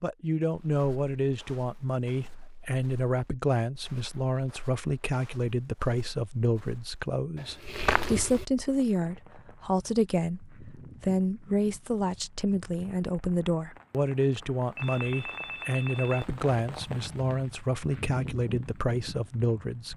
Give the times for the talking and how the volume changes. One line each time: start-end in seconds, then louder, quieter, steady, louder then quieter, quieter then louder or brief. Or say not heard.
0.0-19.9 steady.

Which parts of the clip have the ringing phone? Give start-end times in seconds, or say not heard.
14.8-16.3.